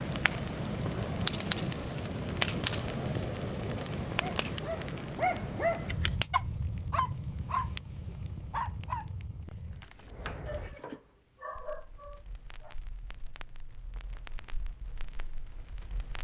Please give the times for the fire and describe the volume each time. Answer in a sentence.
You can hear the fire from 0.0 to 16.1 s, getting quieter.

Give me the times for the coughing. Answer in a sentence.
You can't hear the coughing here.